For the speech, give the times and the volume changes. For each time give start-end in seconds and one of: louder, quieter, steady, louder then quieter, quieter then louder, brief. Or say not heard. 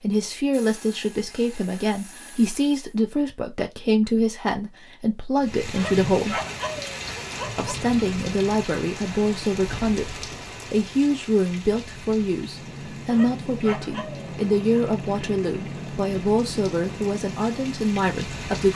0.0-6.4 steady
7.5-18.7 steady.